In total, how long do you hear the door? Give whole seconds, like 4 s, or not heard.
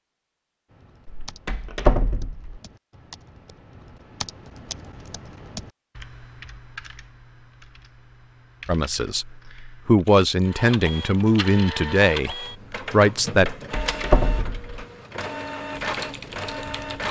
3 s.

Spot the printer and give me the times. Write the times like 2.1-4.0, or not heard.
10.4-17.0.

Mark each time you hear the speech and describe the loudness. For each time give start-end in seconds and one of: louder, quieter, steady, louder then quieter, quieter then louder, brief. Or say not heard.
8.7-13.5 louder.